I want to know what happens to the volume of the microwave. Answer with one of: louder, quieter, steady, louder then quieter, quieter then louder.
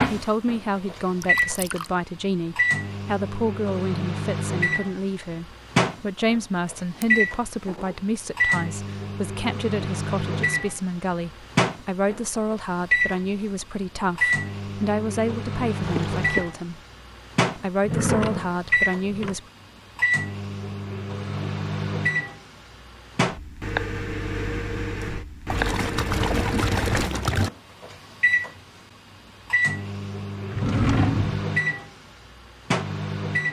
steady.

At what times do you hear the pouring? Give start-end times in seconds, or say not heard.
1.2-1.9, 15.8-16.5, 25.5-27.5.